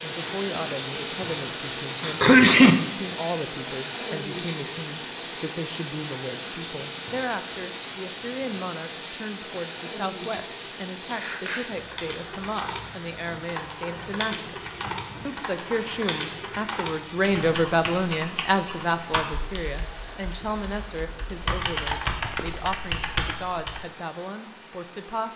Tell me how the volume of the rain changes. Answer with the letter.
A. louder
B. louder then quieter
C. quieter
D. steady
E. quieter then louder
C.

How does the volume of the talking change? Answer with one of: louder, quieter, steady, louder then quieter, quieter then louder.
louder then quieter.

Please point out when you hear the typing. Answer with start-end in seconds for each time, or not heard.
11.8-23.9.